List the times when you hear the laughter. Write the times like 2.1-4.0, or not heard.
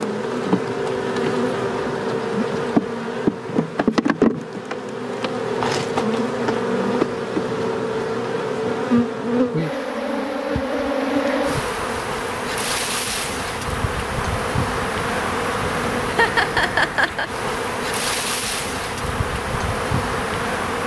16.1-17.3.